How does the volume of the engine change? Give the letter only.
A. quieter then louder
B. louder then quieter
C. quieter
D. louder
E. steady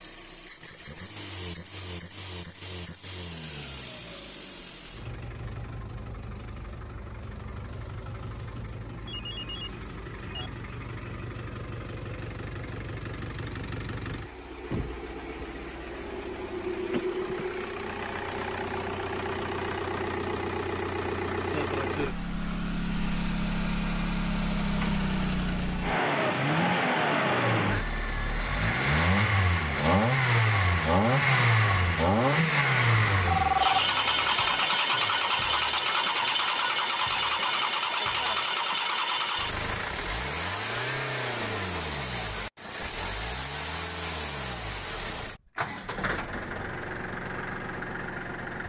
B.